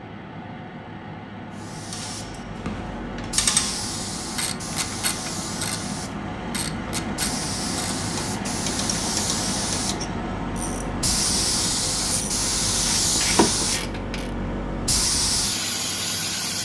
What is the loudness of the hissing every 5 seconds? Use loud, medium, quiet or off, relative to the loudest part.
medium, medium, loud, loud.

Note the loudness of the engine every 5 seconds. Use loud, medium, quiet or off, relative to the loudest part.
medium, loud, loud, medium.